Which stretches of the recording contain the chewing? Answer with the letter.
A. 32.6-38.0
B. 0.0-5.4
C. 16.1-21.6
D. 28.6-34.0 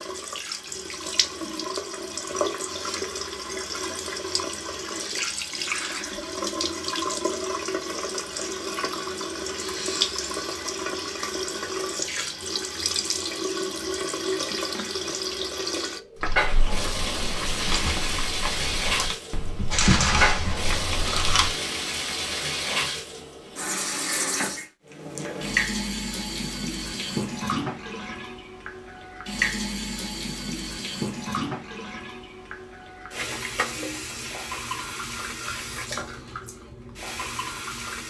C.